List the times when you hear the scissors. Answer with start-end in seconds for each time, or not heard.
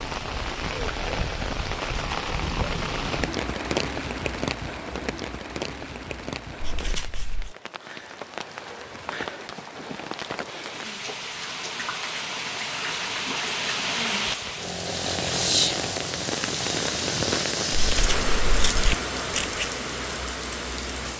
6.6-7.5, 17.9-19.6.